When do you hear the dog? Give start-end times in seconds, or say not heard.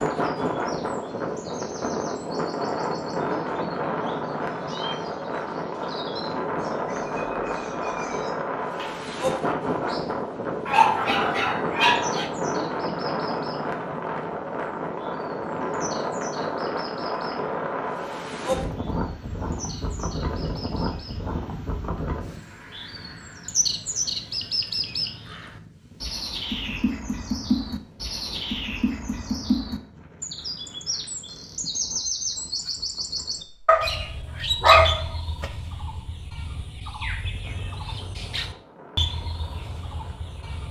10.7-12.3, 33.6-35.5.